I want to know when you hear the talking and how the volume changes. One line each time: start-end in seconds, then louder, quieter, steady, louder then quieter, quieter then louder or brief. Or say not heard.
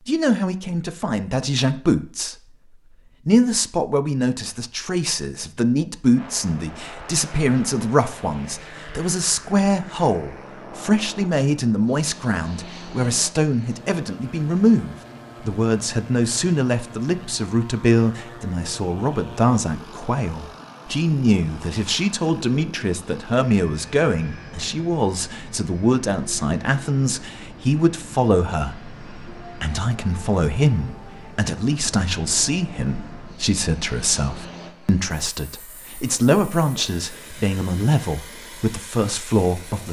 0.1-2.4 brief
3.2-39.8 steady.